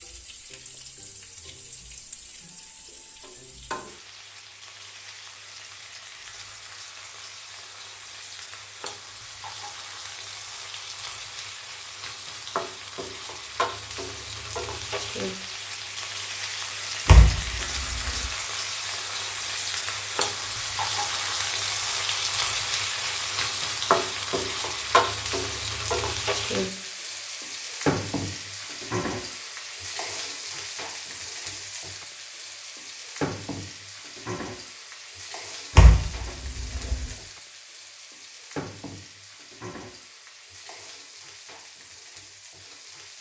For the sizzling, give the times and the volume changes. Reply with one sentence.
You can hear the sizzling from 0.0 to 43.1 s, getting louder then quieter.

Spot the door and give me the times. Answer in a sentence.
You can hear the door from 17.1 to 18.3 s and from 35.8 to 37.1 s.